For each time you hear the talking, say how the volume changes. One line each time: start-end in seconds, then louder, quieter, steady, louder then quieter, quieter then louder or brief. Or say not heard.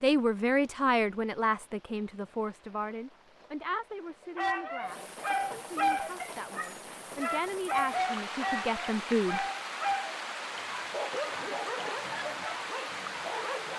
0.0-9.4 quieter then louder.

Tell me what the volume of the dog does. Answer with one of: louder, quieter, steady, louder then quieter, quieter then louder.
quieter.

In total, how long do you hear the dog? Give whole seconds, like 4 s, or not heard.
9 s.